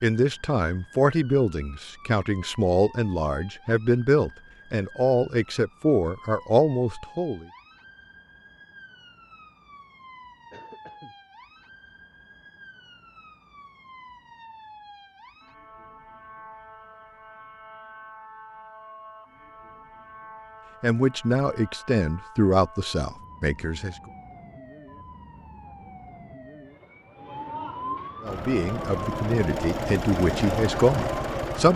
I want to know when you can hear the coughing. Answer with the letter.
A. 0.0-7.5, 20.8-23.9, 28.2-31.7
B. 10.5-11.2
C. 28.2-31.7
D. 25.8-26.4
B.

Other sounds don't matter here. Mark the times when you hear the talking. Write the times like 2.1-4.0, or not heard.
0.0-7.5, 20.8-23.9, 28.2-31.7.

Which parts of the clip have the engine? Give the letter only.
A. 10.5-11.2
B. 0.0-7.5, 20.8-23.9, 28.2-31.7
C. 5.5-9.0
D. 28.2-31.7
D.